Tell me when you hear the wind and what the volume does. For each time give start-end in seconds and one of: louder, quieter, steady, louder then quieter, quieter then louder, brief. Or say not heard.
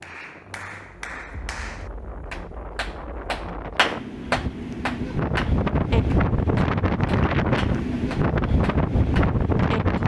0.0-10.0 louder.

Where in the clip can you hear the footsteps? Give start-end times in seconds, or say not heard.
not heard.